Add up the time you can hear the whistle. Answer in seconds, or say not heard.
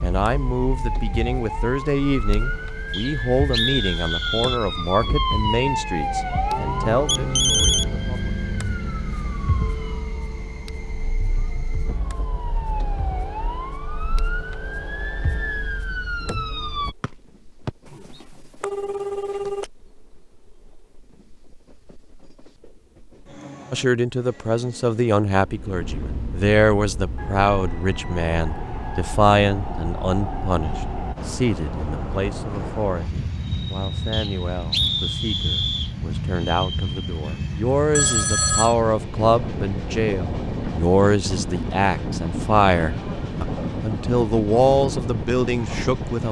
4 s.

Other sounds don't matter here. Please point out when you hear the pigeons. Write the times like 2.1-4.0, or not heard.
not heard.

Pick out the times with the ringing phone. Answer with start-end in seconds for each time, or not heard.
7.0-7.8, 17.9-19.7, 38.0-38.8.